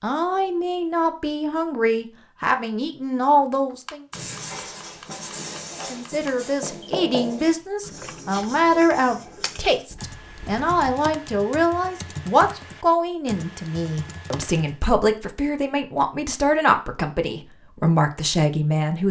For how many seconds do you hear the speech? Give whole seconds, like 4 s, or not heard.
17 s.